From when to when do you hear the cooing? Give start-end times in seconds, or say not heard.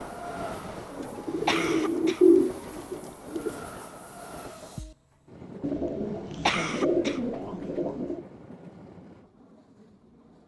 0.9-3.6, 5.6-8.2.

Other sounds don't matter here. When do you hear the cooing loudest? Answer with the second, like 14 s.
2 s.